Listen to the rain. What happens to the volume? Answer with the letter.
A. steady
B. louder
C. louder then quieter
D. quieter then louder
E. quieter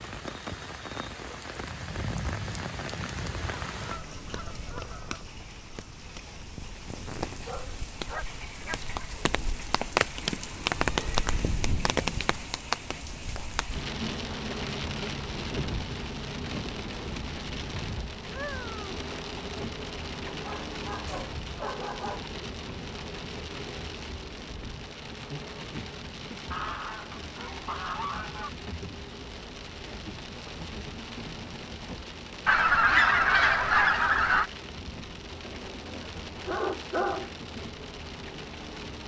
C.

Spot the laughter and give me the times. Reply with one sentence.
You can't hear the laughter here.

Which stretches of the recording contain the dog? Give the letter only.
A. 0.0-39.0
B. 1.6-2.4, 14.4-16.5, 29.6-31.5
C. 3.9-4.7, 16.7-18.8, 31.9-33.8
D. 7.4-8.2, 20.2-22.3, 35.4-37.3
D.